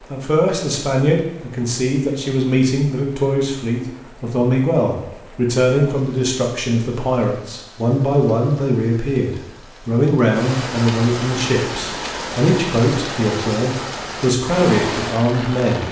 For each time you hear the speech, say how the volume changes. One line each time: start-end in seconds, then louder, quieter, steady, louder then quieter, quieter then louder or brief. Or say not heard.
0.1-15.8 steady.